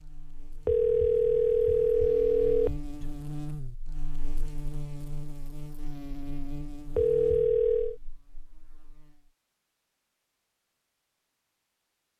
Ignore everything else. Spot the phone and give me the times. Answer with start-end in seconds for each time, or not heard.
0.7-3.1, 7.0-8.0.